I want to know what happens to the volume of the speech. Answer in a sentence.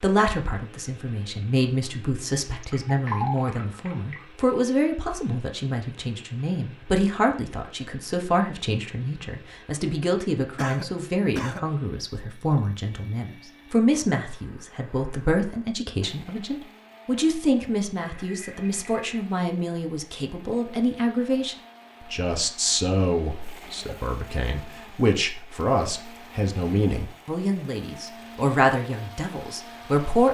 The volume of the speech stays about the same.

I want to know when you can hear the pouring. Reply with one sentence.
The pouring can be heard from 2.6 to 4.2 s and from 17.9 to 19.1 s.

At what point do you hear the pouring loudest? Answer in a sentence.
The volume of the pouring peaks at 3 seconds.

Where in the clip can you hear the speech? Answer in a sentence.
You can hear the speech from 0.0 to 30.2 s.